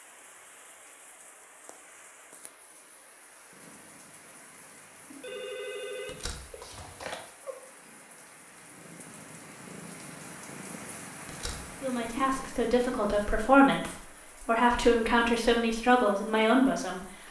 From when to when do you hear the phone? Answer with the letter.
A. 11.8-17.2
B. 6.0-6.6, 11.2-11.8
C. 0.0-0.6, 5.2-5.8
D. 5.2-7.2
D.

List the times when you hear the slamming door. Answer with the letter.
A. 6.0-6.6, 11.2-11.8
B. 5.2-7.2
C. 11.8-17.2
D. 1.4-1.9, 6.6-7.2
A.